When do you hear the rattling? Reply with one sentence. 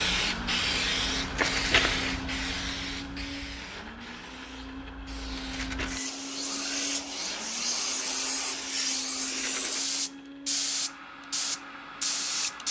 You can hear the rattling from 1.2 to 1.7 s, from 5.5 to 6.0 s and from 9.3 to 9.8 s.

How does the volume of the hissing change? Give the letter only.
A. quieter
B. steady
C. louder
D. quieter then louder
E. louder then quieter
D.